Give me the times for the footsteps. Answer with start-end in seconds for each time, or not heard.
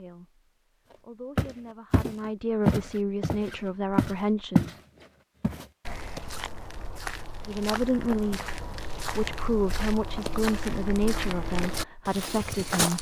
1.4-12.9.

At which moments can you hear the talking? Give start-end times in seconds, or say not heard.
0.0-4.7, 7.5-12.9.